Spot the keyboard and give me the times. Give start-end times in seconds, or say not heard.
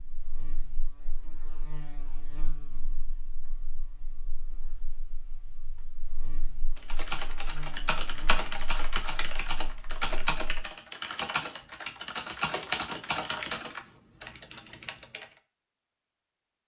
6.8-15.2.